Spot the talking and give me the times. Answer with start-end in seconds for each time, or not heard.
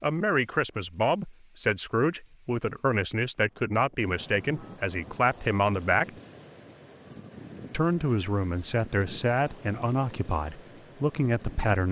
0.0-6.1, 7.7-11.8.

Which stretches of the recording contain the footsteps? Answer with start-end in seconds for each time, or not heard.
not heard.